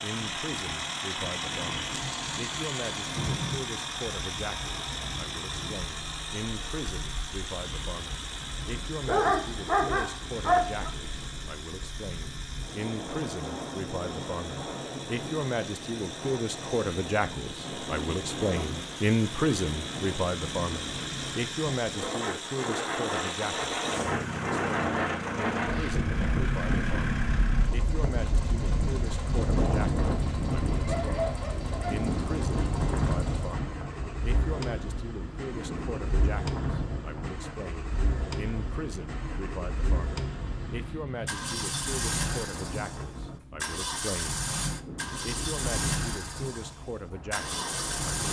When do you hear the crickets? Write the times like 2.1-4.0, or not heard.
not heard.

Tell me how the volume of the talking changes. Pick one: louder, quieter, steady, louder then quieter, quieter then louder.
louder then quieter.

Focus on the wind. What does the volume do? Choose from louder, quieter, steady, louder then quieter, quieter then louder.
louder then quieter.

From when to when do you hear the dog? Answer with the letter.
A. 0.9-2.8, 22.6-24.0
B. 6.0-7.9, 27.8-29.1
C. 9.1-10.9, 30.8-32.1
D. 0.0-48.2
C.